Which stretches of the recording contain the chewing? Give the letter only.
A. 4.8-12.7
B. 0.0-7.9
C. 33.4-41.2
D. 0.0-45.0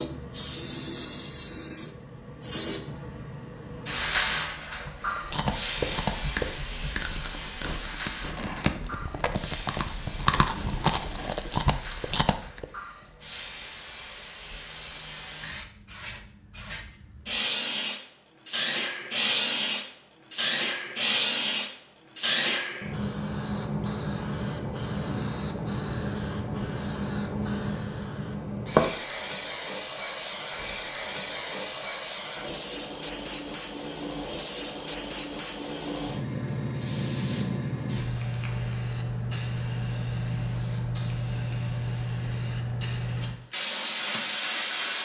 A.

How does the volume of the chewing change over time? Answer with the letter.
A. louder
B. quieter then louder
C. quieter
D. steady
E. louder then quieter
B.